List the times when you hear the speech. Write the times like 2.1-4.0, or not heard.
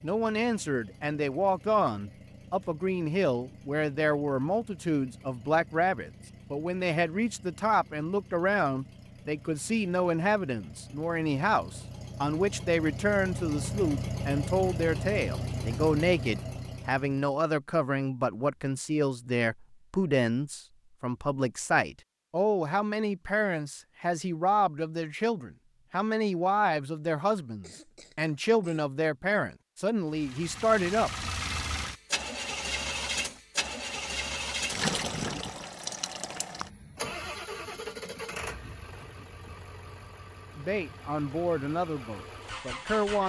0.0-31.3, 40.5-43.2.